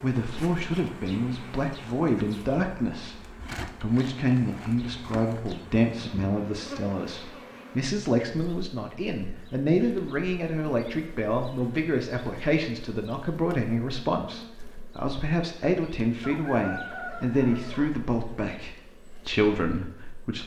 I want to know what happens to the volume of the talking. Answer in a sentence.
The loudness of the talking stays about the same.